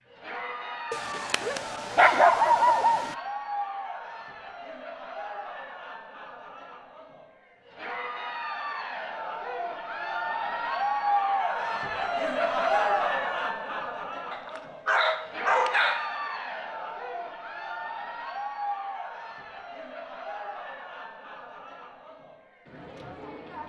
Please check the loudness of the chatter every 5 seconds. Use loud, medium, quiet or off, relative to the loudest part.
medium, medium, loud, medium, quiet.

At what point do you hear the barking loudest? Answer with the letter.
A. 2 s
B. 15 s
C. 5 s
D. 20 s
A.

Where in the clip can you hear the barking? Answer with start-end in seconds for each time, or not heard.
0.9-3.1, 14.3-16.1.